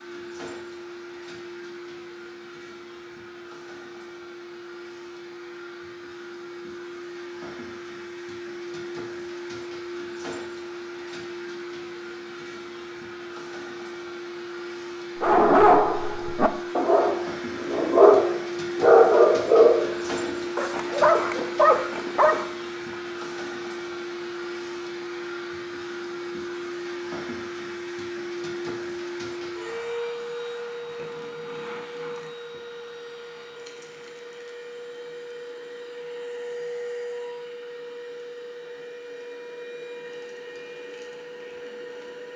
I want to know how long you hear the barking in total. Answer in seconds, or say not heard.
7 s.